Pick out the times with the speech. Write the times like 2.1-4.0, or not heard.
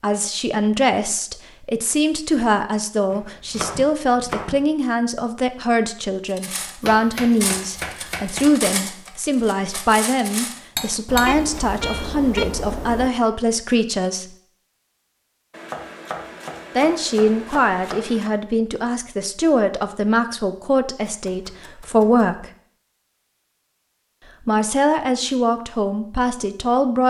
0.0-14.2, 16.8-22.5, 24.4-27.0.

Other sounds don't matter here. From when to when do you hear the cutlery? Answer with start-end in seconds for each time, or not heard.
6.2-11.8.